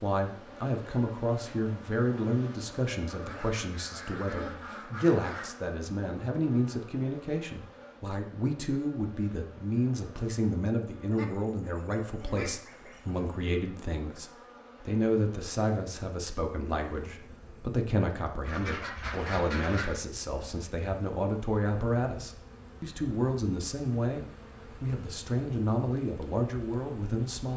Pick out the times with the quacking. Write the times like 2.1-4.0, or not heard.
3.0-5.5, 11.1-13.5, 18.4-20.0.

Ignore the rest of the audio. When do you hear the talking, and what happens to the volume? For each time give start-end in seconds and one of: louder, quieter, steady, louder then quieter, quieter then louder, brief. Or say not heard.
0.0-27.5 steady.